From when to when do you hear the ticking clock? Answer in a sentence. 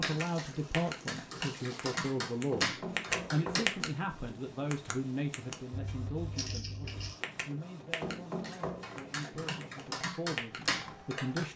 You can hear the ticking clock from 0.0 to 0.9 s, from 1.8 to 3.9 s, from 4.7 to 8.2 s and from 8.9 to 10.6 s.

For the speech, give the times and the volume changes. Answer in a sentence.
You can hear the speech from 0.0 to 11.5 s, getting quieter.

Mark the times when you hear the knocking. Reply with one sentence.
You can hear the knocking from 2.5 to 3.7 s and from 8.0 to 9.0 s.